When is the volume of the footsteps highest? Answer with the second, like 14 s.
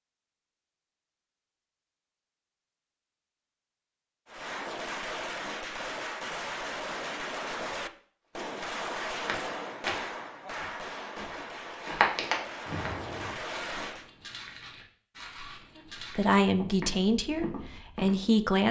12 s.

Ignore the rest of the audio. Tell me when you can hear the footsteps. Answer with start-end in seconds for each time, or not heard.
8.5-18.1.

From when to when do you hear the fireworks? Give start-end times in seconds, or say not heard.
4.2-14.1.